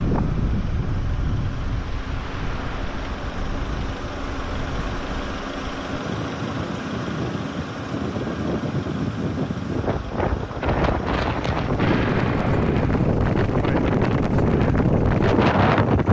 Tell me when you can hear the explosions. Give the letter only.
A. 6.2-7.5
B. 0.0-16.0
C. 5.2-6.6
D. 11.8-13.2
D.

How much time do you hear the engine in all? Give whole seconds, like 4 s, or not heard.
16 s.